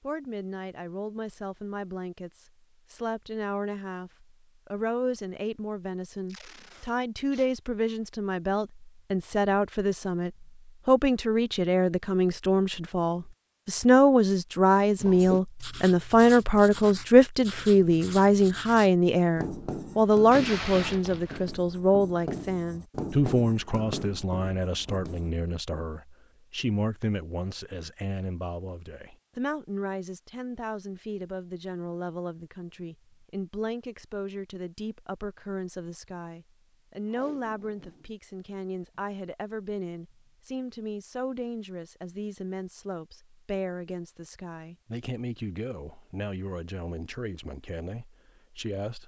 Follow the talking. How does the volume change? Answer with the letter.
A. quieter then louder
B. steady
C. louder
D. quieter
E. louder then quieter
E.